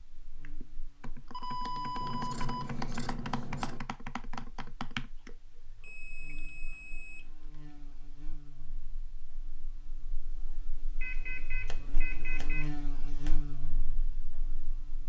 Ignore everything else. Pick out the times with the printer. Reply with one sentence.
The printer can't be heard in this clip.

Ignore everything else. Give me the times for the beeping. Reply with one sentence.
The beeping can be heard from 1.3 to 2.6 s, from 5.8 to 7.3 s and from 11.0 to 12.7 s.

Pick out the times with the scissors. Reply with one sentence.
You can hear the scissors from 2.0 to 3.8 s and from 11.7 to 13.4 s.